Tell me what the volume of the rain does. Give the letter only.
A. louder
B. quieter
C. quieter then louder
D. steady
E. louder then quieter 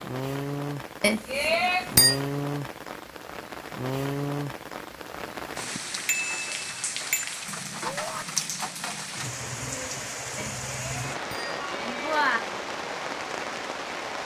D.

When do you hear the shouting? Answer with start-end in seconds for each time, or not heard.
7.8-8.2.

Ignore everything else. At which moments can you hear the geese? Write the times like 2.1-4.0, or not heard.
not heard.